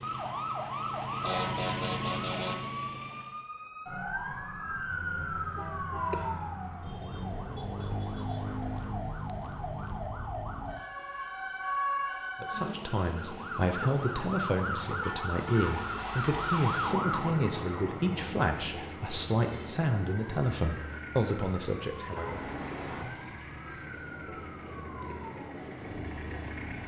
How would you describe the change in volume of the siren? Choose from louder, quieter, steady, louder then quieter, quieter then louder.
quieter.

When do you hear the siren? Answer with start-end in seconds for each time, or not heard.
0.0-26.8.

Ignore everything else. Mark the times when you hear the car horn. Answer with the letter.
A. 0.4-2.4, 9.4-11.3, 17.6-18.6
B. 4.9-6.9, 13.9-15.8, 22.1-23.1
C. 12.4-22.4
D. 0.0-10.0
B.